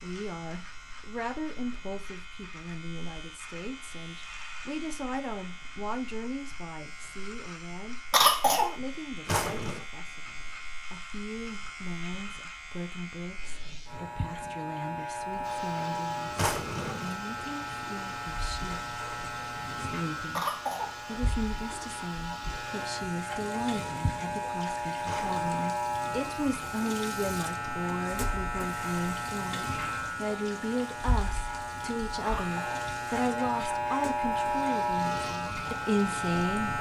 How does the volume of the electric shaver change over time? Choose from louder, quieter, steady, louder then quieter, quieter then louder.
louder.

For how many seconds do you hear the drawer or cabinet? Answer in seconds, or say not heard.
2 s.